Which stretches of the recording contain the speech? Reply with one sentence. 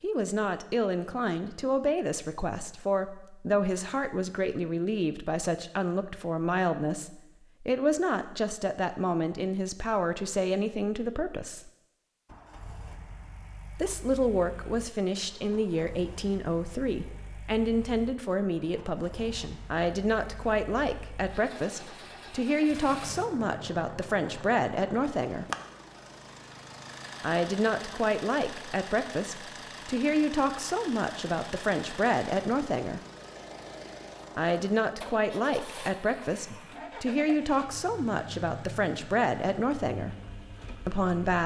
You can hear the speech from 0.0 to 11.7 s, from 13.8 to 25.4 s, from 27.2 to 33.0 s, from 34.4 to 40.1 s and from 40.9 to 41.4 s.